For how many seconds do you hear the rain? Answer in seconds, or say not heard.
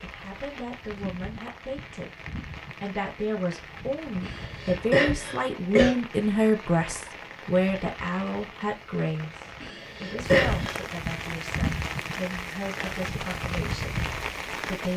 15 s.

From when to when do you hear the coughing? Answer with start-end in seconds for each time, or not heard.
4.2-6.0, 9.6-10.8.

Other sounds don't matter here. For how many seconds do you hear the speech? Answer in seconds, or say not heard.
14 s.